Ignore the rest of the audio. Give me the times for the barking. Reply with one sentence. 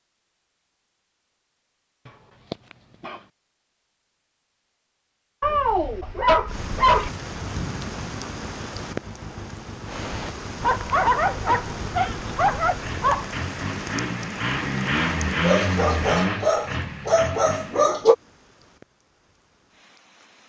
You can hear the barking from 2.0 to 3.2 s, from 5.4 to 7.1 s, from 10.6 to 13.3 s and from 15.4 to 18.1 s.